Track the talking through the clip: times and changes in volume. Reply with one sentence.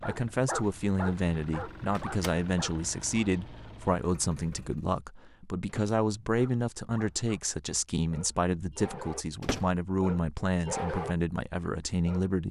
The talking can be heard from 0.1 to 12.4 s, at a steady volume.